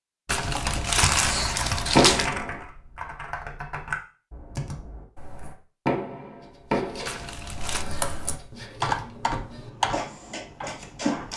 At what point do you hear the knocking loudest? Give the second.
2 s.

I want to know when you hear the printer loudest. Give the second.
11 s.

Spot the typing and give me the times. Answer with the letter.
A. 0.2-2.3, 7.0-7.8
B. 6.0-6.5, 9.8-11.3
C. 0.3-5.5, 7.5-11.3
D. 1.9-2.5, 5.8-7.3
C.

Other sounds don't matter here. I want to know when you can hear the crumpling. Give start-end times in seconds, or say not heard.
0.2-2.3, 7.0-7.8.